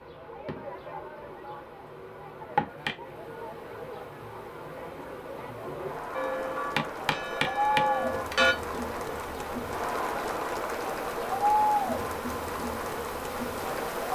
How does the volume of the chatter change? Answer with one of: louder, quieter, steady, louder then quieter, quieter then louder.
louder.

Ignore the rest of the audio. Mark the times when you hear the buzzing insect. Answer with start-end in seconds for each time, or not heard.
0.0-14.1.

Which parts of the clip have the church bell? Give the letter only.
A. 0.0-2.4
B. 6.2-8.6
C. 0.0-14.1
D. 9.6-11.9
B.